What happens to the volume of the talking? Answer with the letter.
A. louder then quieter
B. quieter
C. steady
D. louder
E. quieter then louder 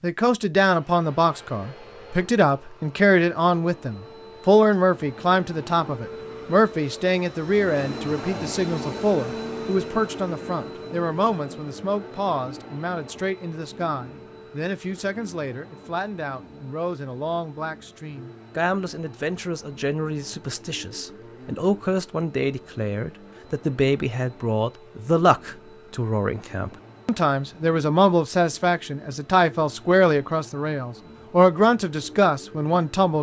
E.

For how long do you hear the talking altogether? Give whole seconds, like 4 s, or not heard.
33 s.